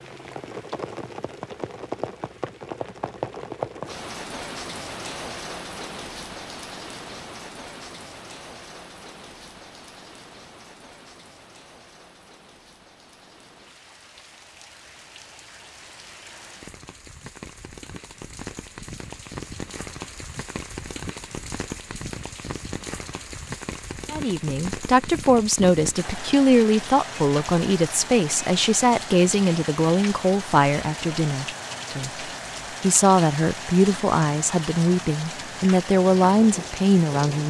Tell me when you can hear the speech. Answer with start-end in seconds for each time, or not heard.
24.1-32.1, 32.8-37.4.